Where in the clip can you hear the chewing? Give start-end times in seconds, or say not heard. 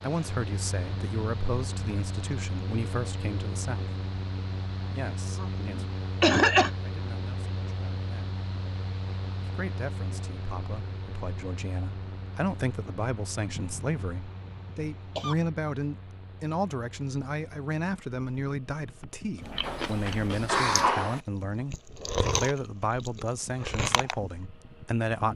19.4-24.4.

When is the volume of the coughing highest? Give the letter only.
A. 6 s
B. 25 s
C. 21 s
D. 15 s
A.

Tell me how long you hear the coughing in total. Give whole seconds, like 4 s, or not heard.
5 s.